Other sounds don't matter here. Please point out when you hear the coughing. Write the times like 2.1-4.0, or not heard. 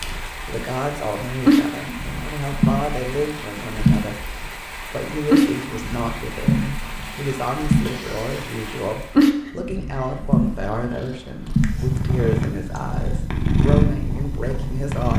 7.8-8.4.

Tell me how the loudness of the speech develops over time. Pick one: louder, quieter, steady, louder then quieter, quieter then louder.
steady.